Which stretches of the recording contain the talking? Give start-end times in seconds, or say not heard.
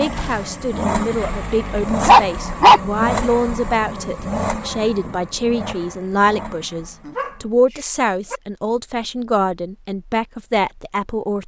0.0-11.4.